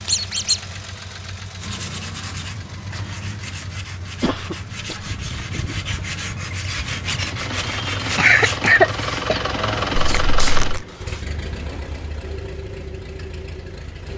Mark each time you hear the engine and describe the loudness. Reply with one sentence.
The engine can be heard from 0.0 to 14.1 s, getting louder then quieter.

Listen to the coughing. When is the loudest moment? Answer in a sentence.
The volume of the coughing peaks at 9 seconds.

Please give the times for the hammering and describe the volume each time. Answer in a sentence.
The hammering can't be heard in this clip.